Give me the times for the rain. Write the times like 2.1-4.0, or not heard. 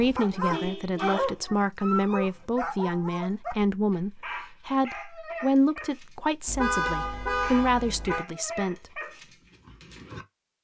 not heard.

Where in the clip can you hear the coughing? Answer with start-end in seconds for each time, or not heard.
not heard.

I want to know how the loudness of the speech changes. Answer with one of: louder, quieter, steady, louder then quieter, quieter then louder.
steady.